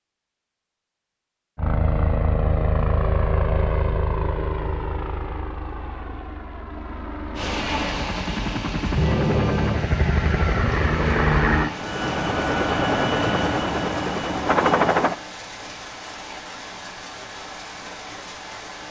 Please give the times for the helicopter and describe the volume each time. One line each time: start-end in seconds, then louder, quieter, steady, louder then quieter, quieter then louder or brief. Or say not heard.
1.6-15.2 quieter then louder.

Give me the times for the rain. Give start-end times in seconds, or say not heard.
7.3-18.8.